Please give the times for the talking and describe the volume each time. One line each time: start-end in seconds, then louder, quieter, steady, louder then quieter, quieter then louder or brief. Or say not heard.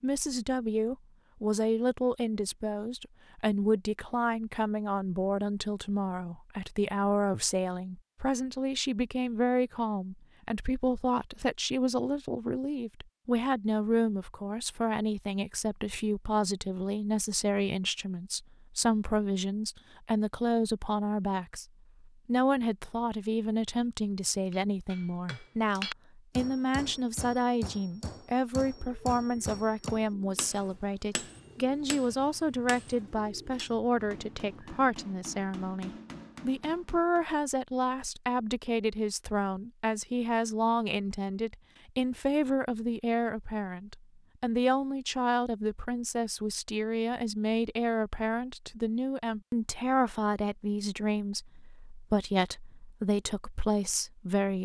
0.0-54.6 steady.